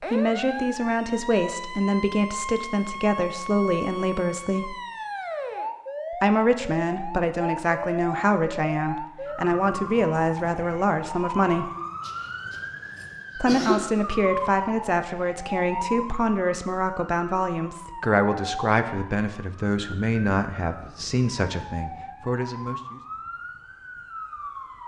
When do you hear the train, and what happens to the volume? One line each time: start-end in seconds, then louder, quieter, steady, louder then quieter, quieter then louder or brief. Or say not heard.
not heard.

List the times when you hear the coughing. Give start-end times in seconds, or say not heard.
12.0-13.9.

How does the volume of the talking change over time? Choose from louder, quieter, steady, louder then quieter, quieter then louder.
steady.